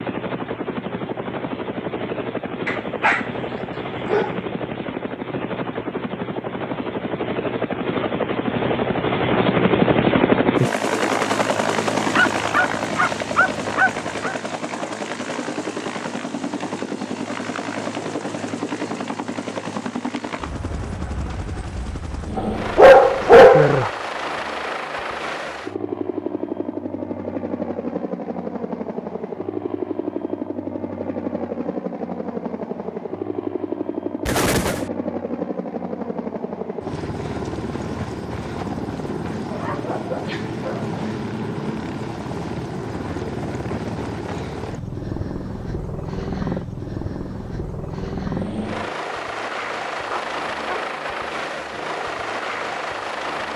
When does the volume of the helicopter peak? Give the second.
10 s.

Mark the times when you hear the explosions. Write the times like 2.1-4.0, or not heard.
34.2-34.9.